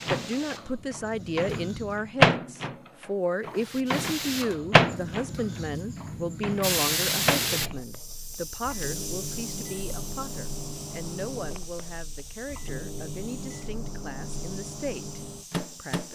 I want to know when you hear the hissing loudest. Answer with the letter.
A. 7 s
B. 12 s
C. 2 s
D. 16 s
A.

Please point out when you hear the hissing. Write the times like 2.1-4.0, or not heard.
0.0-2.3, 3.5-16.1.